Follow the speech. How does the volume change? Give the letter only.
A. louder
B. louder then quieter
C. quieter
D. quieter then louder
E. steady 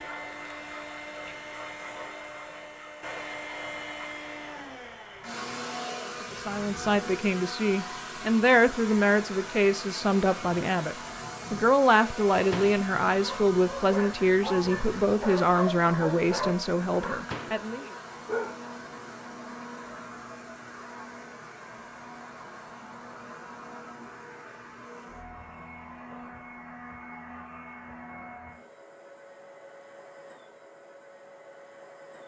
E.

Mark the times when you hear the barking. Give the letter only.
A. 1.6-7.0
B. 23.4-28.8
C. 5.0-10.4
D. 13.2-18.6
D.